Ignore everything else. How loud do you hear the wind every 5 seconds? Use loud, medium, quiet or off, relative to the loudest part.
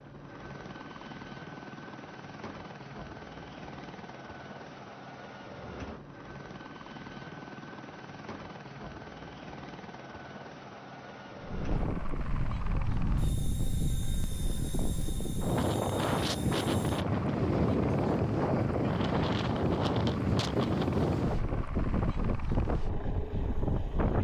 off, off, medium, loud, loud.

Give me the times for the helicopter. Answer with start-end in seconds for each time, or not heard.
0.0-24.1.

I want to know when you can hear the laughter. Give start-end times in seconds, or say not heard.
not heard.